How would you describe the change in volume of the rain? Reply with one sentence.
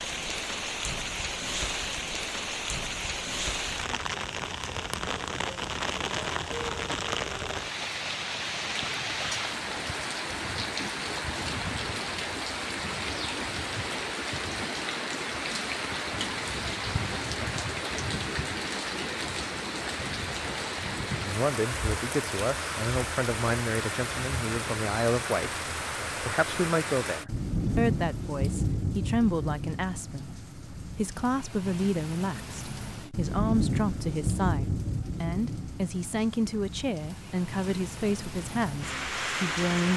The loudness of the rain stays about the same.